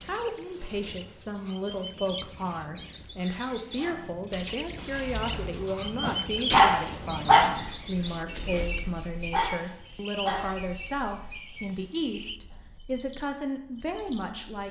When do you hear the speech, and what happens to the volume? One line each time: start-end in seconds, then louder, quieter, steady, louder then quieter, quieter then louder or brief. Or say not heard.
0.1-14.6 steady.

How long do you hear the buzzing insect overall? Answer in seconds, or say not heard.
not heard.